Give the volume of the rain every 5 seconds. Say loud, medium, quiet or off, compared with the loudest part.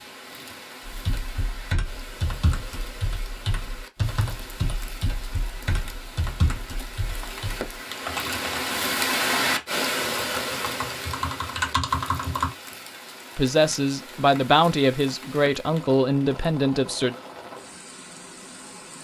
quiet, loud, medium, quiet.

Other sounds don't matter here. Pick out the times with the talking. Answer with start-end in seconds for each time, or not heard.
13.3-17.1.